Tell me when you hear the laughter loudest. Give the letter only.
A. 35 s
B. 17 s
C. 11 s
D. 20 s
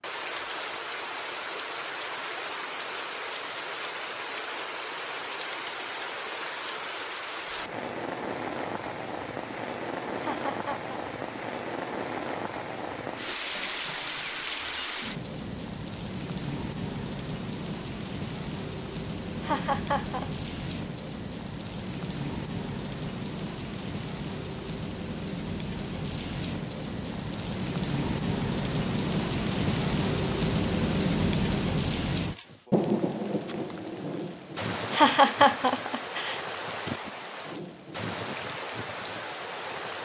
A.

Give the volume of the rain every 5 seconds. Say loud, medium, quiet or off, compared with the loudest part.
medium, medium, medium, medium, medium, loud, loud, medium.